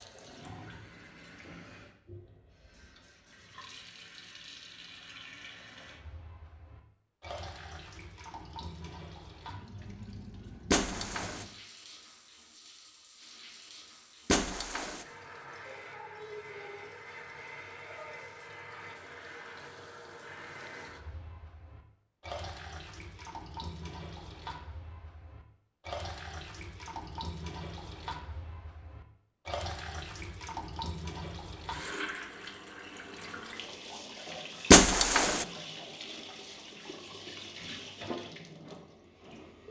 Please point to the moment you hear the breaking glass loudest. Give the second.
35 s.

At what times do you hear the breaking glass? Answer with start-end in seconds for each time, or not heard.
10.7-11.4, 14.2-15.1, 34.7-35.5.